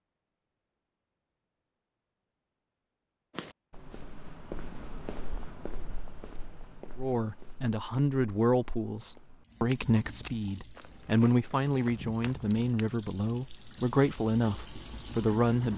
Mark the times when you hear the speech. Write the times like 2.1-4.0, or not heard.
7.0-15.7.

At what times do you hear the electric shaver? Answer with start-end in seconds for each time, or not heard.
not heard.